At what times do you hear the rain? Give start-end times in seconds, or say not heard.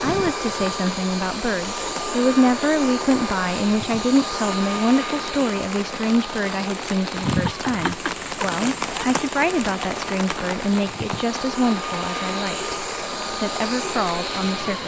0.0-14.8.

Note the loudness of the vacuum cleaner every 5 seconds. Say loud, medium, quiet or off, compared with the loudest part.
loud, medium, loud.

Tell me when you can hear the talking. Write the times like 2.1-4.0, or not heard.
0.0-12.8, 13.4-14.8.